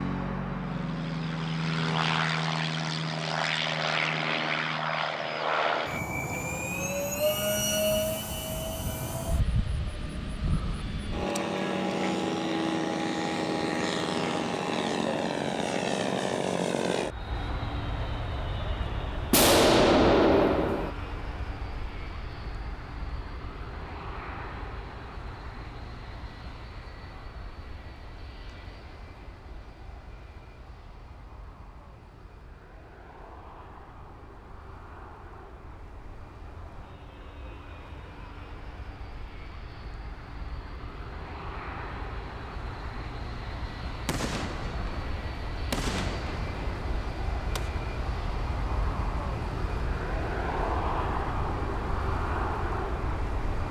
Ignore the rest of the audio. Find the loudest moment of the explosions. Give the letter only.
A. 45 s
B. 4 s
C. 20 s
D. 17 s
C.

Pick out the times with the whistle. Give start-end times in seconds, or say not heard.
not heard.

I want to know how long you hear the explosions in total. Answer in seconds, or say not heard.
5 s.